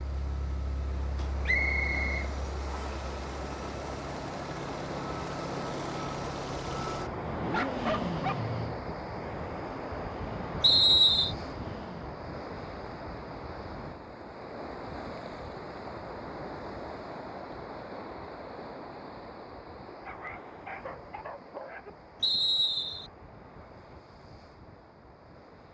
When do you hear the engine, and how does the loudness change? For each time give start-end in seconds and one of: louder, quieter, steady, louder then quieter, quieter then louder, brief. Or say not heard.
0.0-12.2 louder then quieter.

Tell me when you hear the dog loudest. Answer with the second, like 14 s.
8 s.